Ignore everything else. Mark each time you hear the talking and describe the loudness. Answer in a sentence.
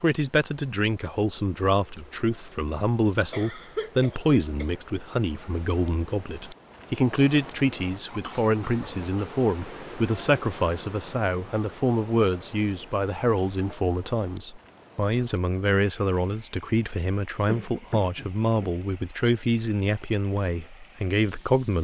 You can hear the talking from 0.0 to 21.7 s, at a steady volume.